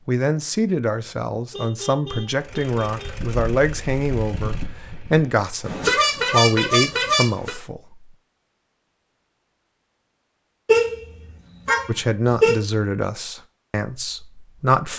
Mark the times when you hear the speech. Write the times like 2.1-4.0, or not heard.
0.1-8.1, 11.8-14.9.